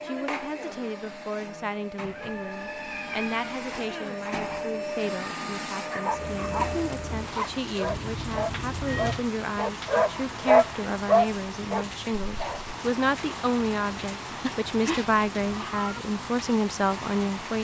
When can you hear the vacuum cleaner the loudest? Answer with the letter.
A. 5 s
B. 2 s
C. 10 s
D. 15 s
A.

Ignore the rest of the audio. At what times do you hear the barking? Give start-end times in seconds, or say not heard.
5.9-12.8.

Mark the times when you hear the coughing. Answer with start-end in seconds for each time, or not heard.
3.7-4.2.